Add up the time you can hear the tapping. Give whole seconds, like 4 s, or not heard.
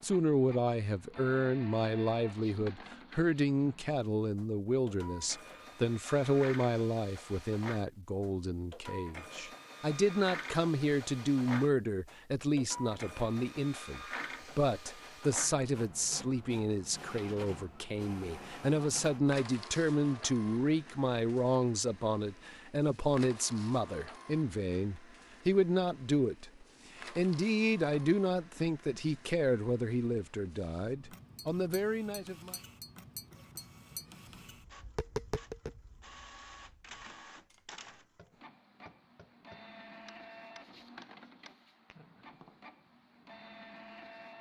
11 s.